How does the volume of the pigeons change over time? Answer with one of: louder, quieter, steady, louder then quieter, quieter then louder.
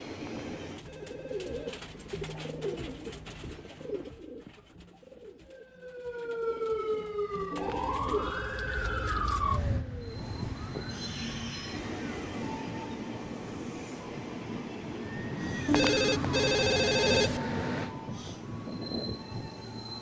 quieter then louder.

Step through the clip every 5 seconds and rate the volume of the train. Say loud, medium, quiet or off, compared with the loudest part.
medium, off, loud, loud.